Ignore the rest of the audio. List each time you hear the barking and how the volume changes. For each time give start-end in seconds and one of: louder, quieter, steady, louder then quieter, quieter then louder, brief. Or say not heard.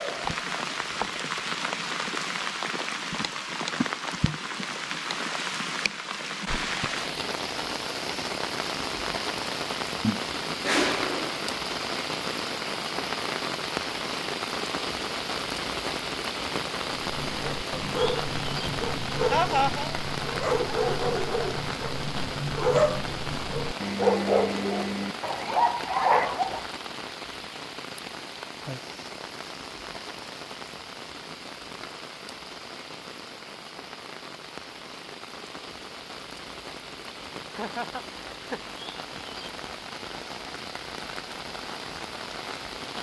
16.9-26.6 louder.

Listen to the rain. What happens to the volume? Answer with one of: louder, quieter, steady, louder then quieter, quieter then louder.
quieter.